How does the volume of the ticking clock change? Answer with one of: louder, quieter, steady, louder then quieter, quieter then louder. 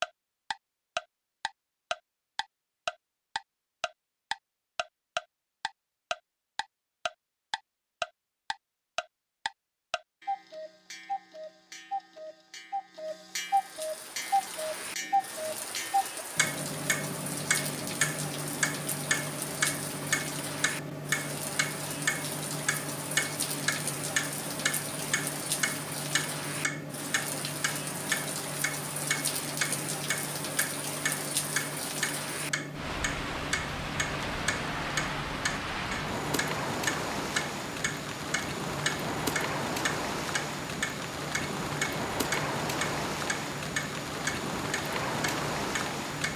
steady.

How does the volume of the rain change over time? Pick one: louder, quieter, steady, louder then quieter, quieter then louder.
louder.